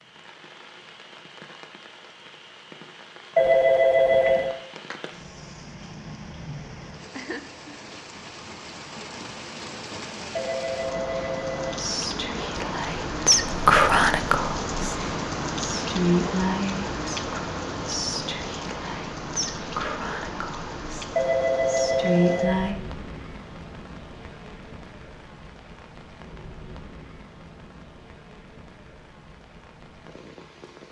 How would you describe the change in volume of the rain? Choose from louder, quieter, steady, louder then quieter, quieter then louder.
louder then quieter.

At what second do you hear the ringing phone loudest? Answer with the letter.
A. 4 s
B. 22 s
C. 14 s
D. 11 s
A.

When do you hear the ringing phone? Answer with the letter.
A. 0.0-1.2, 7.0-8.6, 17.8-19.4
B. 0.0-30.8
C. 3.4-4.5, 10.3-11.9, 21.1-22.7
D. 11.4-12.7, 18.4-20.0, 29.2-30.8
C.